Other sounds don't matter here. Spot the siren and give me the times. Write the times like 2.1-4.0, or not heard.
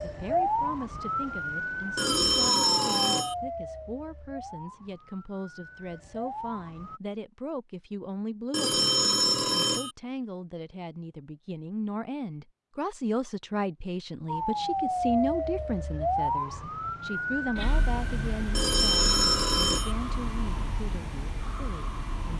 0.0-7.0, 14.2-22.3.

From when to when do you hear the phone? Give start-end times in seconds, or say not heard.
1.9-3.4, 8.5-9.9, 18.6-19.9.